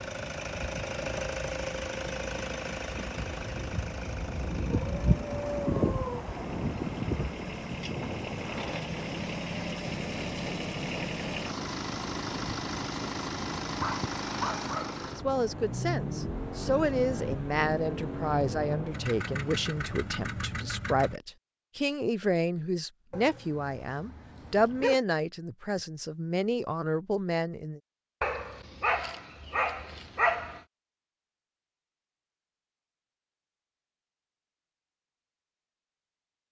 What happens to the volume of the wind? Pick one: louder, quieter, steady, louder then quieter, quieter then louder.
louder then quieter.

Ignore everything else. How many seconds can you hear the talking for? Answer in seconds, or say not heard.
13 s.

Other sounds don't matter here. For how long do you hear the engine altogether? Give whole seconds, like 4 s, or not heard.
21 s.